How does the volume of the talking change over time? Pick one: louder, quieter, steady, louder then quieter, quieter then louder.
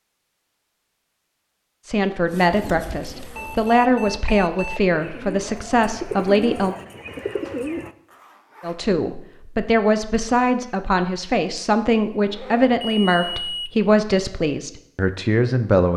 steady.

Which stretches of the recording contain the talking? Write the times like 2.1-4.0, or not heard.
1.9-6.8, 8.6-15.9.